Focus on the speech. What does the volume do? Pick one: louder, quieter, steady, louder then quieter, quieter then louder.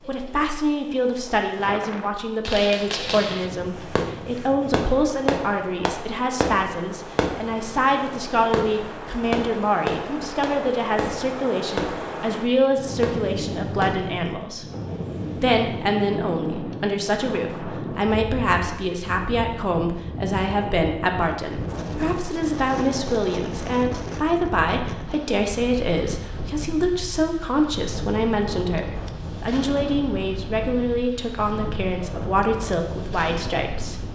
steady.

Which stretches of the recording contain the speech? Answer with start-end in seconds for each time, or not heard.
0.1-14.7, 15.3-34.0.